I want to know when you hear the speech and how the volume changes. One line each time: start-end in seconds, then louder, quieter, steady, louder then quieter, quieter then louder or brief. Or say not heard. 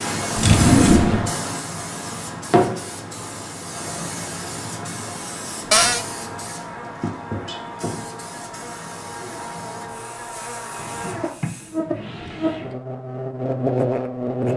not heard.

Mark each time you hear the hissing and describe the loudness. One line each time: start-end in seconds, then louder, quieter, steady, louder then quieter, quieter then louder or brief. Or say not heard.
0.0-11.8 quieter.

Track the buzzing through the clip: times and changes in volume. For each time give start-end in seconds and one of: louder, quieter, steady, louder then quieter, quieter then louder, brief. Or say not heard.
5.8-14.5 louder.